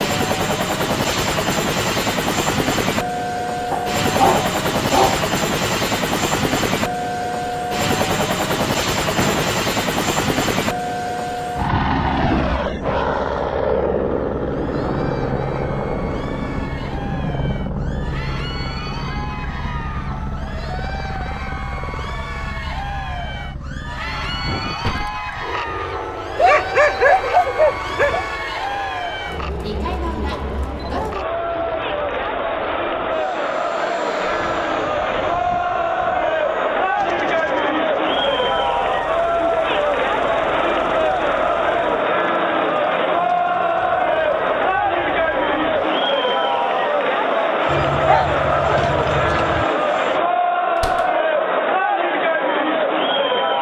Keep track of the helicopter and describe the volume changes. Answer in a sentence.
The volume of the helicopter goes down.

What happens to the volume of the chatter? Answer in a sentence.
The loudness of the chatter goes up.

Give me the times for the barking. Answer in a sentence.
The barking can be heard from 3.7 to 5.2 s, from 26.4 to 28.2 s and from 47.6 to 49.6 s.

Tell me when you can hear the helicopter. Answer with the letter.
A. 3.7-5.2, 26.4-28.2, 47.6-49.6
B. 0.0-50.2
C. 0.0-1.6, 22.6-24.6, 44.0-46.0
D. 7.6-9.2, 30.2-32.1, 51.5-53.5
B.